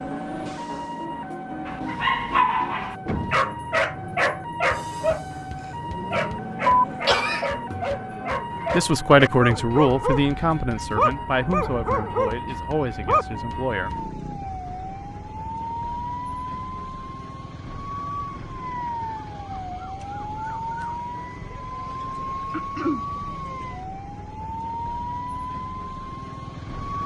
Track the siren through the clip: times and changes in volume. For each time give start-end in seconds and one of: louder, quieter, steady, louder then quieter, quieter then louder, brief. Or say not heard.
0.0-27.0 steady.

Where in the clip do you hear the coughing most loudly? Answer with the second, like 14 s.
7 s.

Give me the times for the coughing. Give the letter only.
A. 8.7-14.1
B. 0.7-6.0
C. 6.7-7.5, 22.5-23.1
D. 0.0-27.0
C.